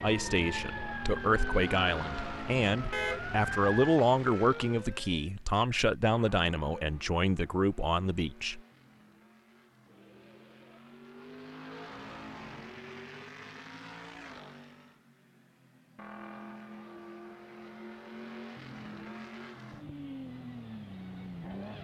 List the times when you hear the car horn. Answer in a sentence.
The car horn can be heard from 2.9 to 3.5 s.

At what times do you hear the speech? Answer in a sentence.
The speech can be heard from 0.0 to 8.6 s.